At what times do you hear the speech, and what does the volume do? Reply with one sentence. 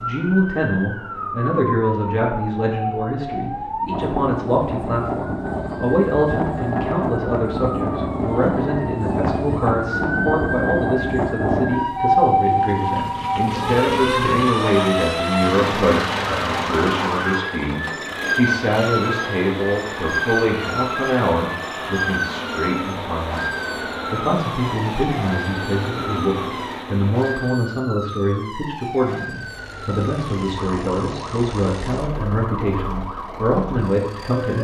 The speech can be heard from 0.0 to 23.5 s, at a steady volume; and from 24.1 to 34.5 s, at a steady volume.